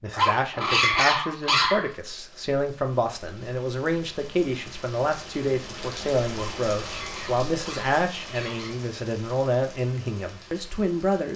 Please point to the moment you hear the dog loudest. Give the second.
1 s.